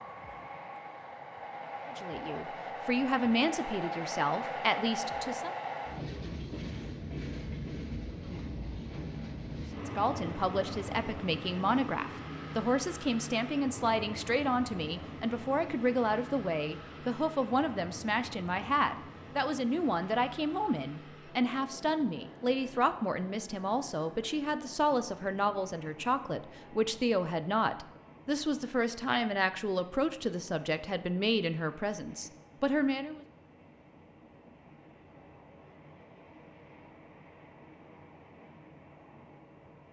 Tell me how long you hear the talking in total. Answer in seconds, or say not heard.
27 s.